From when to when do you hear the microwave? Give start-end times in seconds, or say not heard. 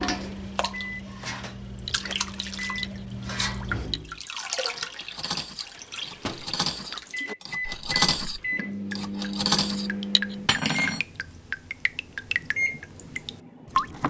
0.0-4.2, 6.2-14.0.